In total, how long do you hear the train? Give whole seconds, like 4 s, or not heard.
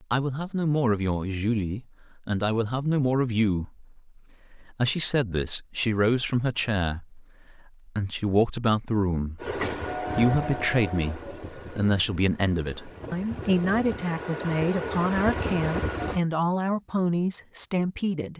7 s.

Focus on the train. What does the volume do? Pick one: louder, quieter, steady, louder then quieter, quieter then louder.
quieter then louder.